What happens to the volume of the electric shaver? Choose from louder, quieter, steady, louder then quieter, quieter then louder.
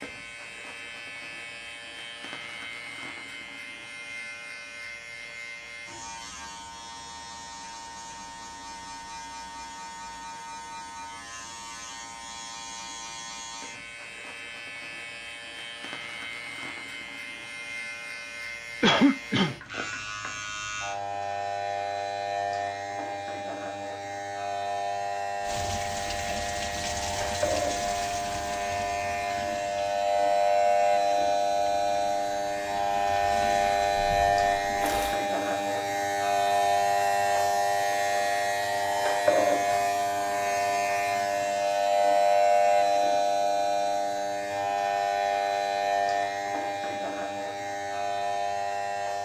louder.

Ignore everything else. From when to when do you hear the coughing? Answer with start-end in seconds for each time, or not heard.
18.8-19.6.